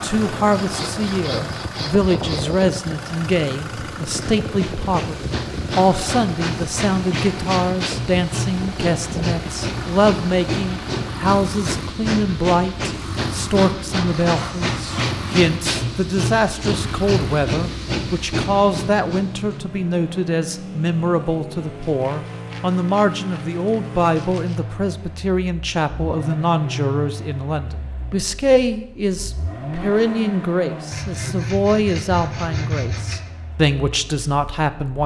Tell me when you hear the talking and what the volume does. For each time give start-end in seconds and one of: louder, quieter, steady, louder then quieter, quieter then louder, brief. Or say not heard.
0.0-35.0 steady.